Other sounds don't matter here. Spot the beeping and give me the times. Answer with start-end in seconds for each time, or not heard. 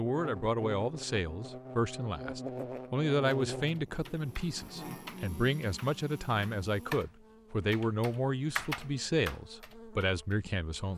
not heard.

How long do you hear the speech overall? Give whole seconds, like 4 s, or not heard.
11 s.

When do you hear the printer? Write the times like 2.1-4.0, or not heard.
not heard.